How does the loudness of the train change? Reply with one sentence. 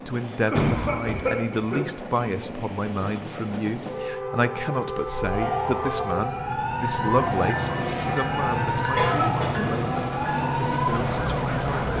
The volume of the train goes up.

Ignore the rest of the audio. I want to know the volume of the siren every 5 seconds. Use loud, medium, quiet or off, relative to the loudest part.
off, loud, loud.